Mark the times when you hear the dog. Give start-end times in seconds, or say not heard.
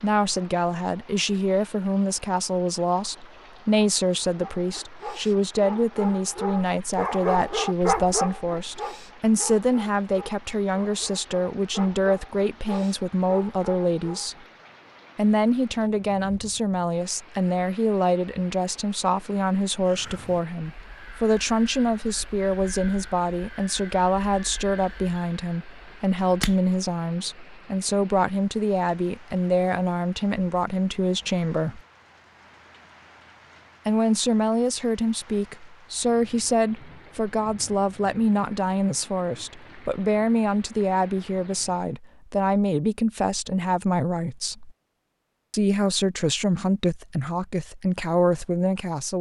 4.2-14.4.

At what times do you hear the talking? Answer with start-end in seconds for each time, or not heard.
0.0-14.3, 15.2-31.8, 33.9-44.7, 45.5-49.1.